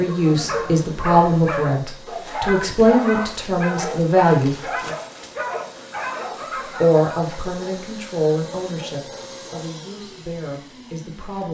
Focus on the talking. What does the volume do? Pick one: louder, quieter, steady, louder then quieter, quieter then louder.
quieter.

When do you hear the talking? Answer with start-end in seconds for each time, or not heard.
0.0-5.0, 6.8-11.4.